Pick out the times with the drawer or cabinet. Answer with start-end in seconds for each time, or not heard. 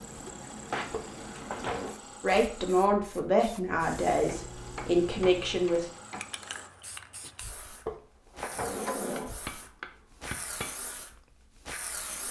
0.9-1.9, 7.8-9.3.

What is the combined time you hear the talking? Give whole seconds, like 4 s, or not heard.
4 s.